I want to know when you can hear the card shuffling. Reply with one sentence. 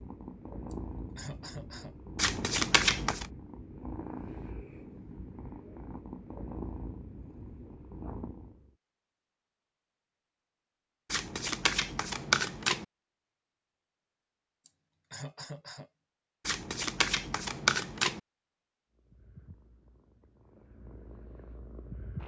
The card shuffling can be heard from 2.1 to 3.2 s, from 11.1 to 12.8 s and from 16.4 to 18.2 s.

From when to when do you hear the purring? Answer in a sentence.
You can hear the purring from 0.0 to 8.7 s and from 18.9 to 22.2 s.